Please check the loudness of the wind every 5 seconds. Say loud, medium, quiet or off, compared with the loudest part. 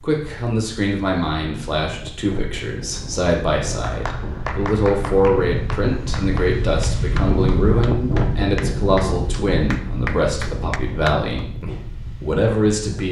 medium, loud, medium.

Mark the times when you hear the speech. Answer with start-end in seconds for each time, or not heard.
0.0-13.0.